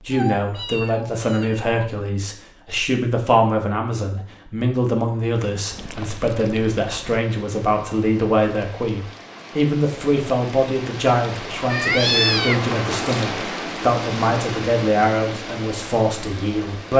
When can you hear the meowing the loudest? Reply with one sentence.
The volume of the meowing peaks at 12 seconds.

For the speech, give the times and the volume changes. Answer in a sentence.
You can hear the speech from 0.1 to 16.9 s, at a steady volume.